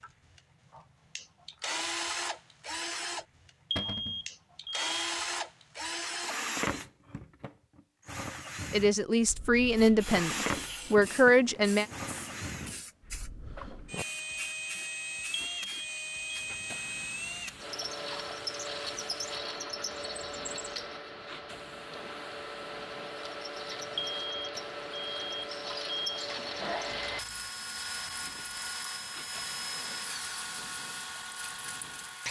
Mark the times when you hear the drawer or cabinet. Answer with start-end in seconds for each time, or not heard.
3.8-4.2, 26.2-27.4.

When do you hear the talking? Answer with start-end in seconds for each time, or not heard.
8.7-11.8.